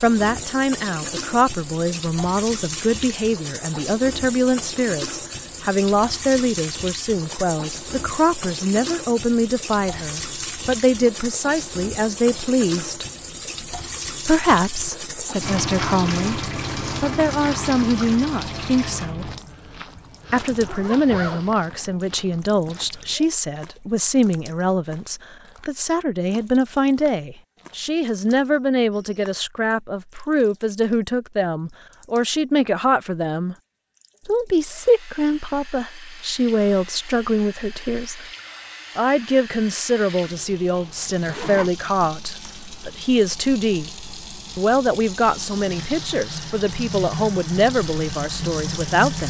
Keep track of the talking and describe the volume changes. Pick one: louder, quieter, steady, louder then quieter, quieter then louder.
steady.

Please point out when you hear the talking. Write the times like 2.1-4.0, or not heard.
0.0-13.1, 14.2-19.3, 20.3-33.5, 34.2-38.2, 39.0-43.9, 44.5-49.2.